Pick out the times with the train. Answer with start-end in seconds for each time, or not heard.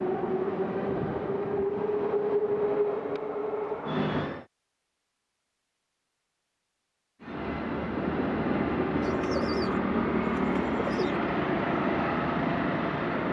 0.0-4.5, 7.2-13.2.